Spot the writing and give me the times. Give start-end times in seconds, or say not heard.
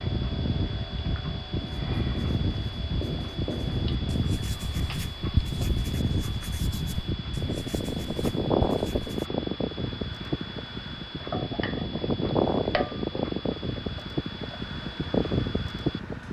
1.6-9.3.